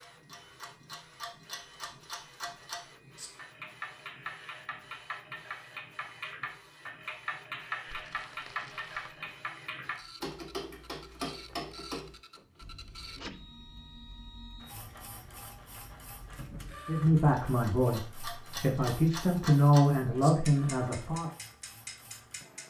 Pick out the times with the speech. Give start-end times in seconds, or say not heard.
16.9-21.3.